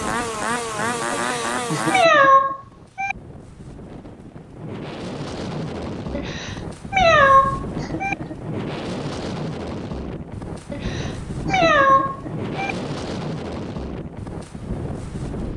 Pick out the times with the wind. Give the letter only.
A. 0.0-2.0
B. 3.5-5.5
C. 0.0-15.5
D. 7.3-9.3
C.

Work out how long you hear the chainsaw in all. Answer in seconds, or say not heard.
2 s.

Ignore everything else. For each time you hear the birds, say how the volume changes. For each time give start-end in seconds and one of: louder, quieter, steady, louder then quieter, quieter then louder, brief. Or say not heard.
not heard.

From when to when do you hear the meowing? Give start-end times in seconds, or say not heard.
1.1-3.1, 6.1-8.2, 10.7-12.8.